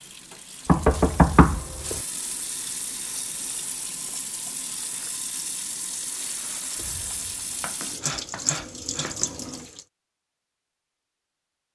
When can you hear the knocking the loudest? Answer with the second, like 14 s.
1 s.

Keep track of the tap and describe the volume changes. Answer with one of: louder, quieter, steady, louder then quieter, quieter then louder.
louder.